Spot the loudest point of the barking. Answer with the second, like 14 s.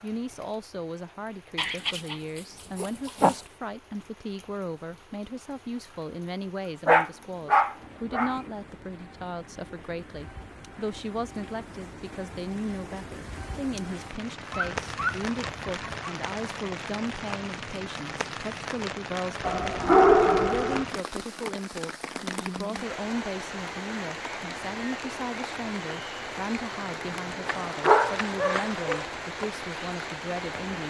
20 s.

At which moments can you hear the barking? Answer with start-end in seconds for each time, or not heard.
1.6-3.4, 6.8-8.4, 14.5-16.1, 19.4-20.9, 27.4-29.1.